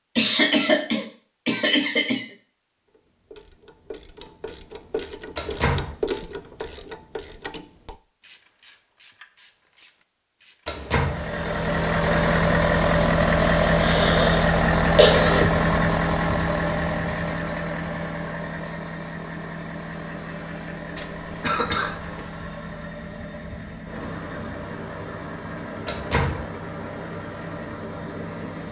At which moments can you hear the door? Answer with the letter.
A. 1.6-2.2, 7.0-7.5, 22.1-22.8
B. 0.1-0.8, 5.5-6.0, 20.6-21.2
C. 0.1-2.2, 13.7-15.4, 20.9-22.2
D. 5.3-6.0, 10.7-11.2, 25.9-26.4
D.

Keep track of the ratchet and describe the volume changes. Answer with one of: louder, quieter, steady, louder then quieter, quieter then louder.
louder then quieter.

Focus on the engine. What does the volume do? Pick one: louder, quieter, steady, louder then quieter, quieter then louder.
quieter.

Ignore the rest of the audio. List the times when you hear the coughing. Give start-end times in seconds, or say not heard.
0.1-2.2, 13.7-15.4, 20.9-22.2.